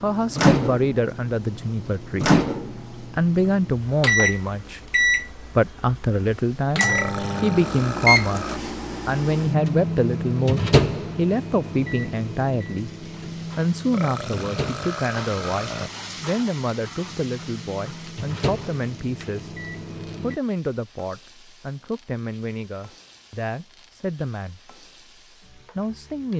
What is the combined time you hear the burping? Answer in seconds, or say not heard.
4 s.